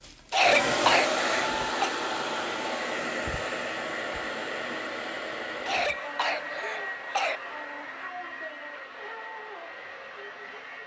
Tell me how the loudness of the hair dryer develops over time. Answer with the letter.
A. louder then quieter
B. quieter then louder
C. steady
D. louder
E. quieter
E.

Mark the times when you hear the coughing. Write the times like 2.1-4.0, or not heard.
0.3-1.9, 5.7-7.4.